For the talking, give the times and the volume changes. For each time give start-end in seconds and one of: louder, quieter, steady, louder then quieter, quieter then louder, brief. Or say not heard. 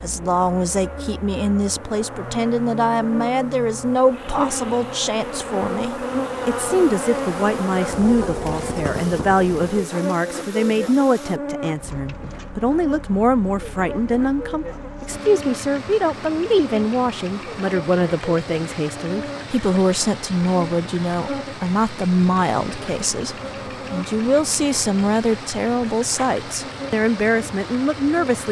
0.0-28.4 steady.